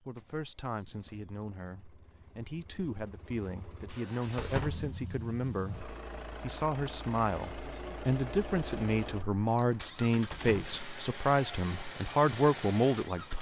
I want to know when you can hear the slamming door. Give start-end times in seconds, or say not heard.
4.3-4.8, 10.3-10.8.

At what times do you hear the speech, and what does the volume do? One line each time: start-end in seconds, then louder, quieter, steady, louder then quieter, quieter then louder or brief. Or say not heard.
0.1-13.3 louder.